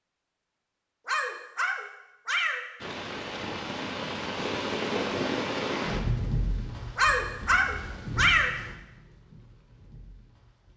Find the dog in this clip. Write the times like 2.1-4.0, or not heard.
1.1-2.6, 7.0-8.5.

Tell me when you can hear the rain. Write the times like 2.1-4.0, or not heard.
2.8-10.7.